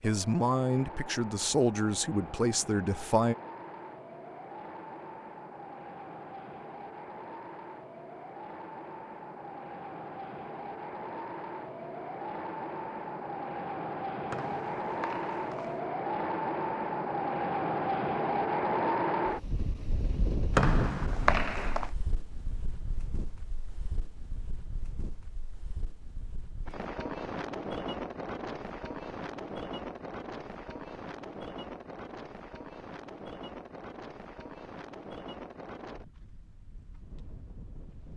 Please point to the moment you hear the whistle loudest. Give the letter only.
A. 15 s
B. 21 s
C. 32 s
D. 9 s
B.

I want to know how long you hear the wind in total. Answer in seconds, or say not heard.
38 s.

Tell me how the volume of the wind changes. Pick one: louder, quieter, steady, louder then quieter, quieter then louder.
louder then quieter.